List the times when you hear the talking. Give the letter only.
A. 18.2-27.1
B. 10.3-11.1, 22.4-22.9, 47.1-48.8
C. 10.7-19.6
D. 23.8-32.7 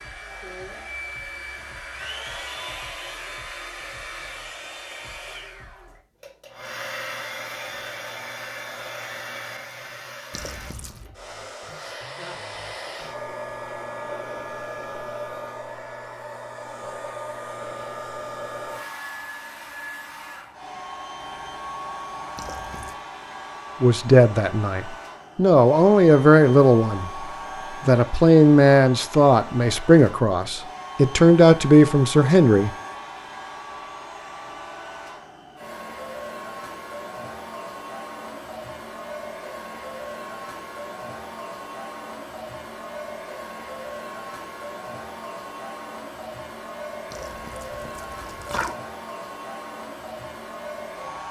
D.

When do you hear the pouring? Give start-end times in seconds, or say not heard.
10.3-11.1, 22.4-22.9, 47.1-48.8.